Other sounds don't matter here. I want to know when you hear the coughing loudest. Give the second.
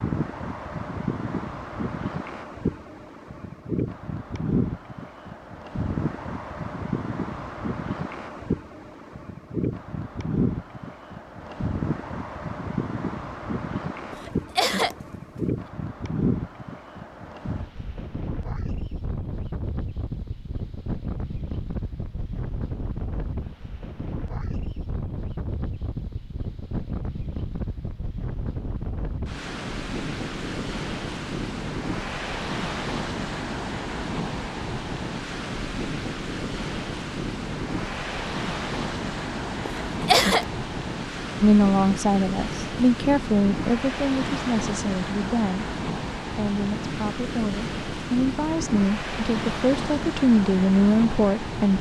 40 s.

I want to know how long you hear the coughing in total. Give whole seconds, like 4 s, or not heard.
2 s.